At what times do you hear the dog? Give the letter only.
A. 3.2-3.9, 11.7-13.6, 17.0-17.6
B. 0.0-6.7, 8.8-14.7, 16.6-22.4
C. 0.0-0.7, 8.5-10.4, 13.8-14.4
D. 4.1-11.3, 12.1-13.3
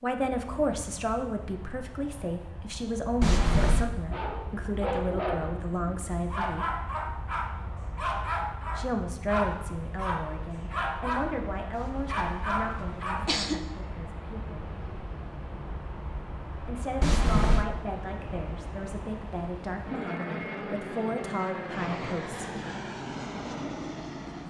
D.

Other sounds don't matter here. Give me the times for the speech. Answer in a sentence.
The speech can be heard from 0.0 to 6.7 s, from 8.8 to 14.7 s and from 16.6 to 22.4 s.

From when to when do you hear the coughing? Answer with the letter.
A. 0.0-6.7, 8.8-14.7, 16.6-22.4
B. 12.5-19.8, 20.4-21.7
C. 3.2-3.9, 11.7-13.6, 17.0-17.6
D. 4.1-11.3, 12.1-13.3
C.